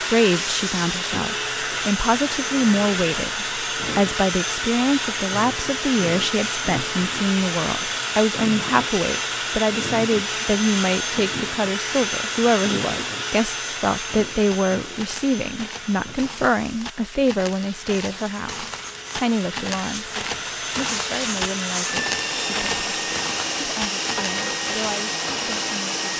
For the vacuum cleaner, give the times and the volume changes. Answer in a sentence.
The vacuum cleaner can be heard from 0.0 to 26.1 s, getting quieter then louder.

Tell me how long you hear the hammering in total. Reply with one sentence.
You can't hear the hammering here.